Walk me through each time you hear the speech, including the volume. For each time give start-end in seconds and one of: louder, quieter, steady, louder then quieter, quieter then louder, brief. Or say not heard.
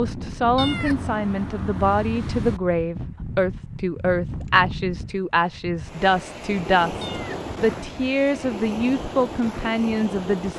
0.0-10.5 steady.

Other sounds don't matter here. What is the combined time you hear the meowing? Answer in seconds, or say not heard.
3 s.